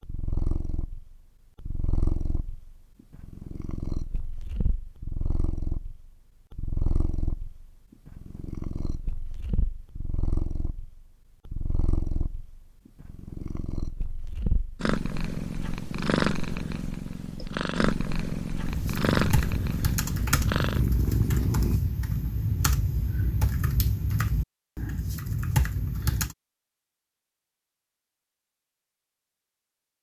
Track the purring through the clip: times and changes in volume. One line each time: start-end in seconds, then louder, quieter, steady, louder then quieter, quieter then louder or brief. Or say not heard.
0.0-21.8 louder.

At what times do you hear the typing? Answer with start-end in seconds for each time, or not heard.
18.6-26.4.